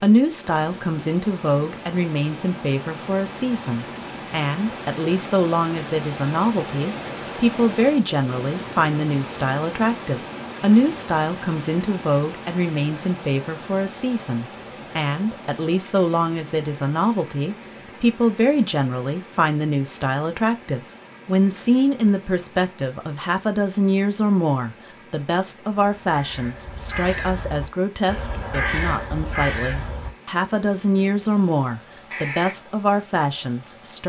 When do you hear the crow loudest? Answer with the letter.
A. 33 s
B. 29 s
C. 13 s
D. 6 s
B.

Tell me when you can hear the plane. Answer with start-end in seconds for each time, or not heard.
not heard.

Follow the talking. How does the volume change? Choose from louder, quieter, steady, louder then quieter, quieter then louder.
steady.